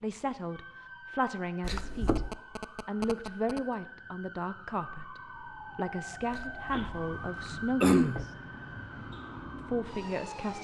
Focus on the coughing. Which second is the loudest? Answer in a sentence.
The volume of the coughing peaks at 8 seconds.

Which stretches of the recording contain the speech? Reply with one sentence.
The speech can be heard from 0.0 to 2.2 s, from 2.9 to 8.3 s and from 9.6 to 10.5 s.